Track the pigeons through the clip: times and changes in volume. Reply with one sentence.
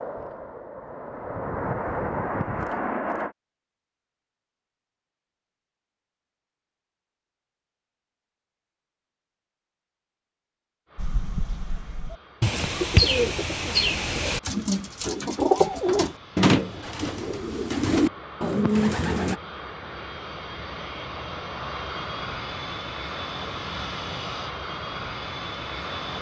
You can hear the pigeons from 10.9 to 19.4 s, getting louder.